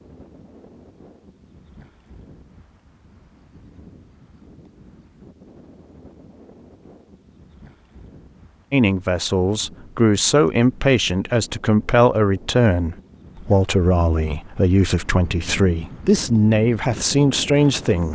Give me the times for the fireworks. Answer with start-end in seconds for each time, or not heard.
not heard.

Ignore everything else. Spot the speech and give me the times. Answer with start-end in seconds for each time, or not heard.
8.7-18.1.